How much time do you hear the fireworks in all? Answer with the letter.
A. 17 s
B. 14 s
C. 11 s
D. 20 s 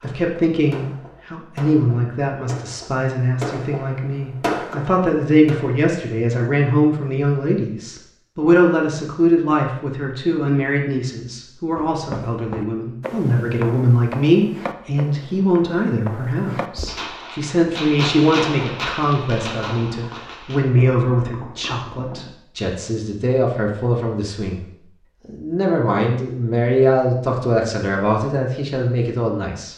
C.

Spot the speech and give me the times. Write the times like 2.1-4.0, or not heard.
0.0-24.6, 25.2-29.7.